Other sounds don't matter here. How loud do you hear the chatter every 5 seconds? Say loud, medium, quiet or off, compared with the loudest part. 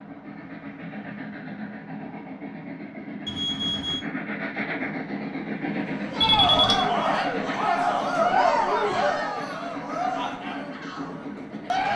off, loud, medium.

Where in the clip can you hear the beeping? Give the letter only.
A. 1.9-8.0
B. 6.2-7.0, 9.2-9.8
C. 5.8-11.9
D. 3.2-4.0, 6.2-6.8
D.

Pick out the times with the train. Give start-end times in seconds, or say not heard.
0.0-11.9.